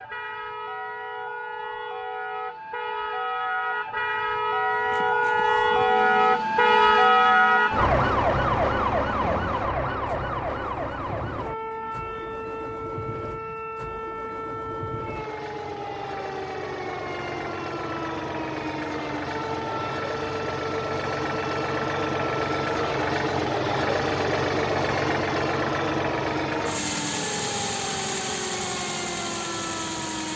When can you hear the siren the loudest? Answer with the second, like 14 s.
7 s.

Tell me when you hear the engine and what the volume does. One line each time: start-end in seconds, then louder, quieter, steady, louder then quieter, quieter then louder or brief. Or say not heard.
4.8-30.3 louder.